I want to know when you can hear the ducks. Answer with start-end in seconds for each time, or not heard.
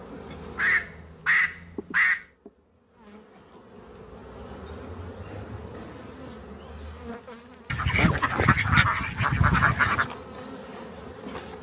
0.1-2.2, 7.7-10.1.